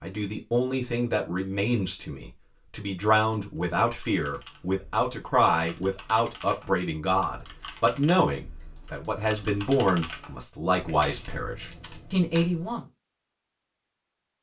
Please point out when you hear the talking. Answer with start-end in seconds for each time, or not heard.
0.0-12.8.